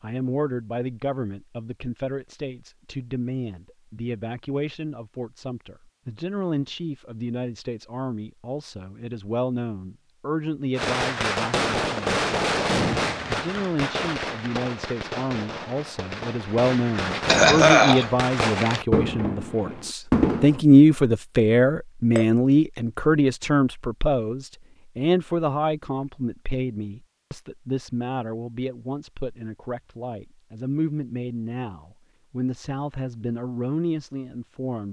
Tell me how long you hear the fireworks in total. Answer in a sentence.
You can hear the fireworks for 10 seconds altogether.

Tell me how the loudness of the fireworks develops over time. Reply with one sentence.
The volume of the fireworks goes down, then up.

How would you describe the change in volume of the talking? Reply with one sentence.
The loudness of the talking goes up, then down.